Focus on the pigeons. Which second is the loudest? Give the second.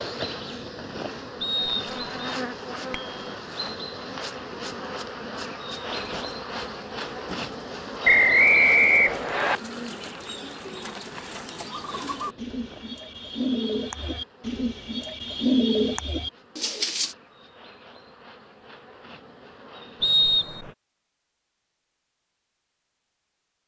16 s.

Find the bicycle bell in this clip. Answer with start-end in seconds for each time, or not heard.
2.9-3.4.